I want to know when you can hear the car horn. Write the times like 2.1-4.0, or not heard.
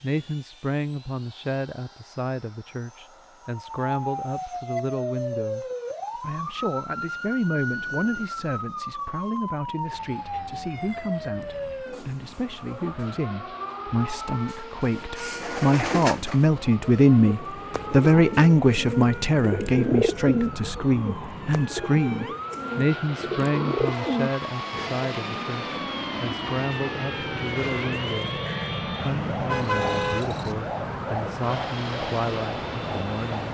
29.3-30.6.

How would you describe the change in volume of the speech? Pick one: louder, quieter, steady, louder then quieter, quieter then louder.
louder then quieter.